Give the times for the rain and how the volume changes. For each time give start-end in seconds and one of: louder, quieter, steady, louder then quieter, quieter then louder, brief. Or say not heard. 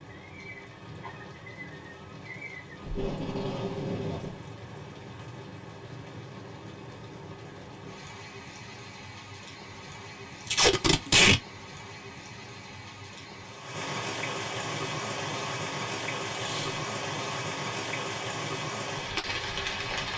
0.0-20.1 louder.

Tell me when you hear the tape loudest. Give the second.
11 s.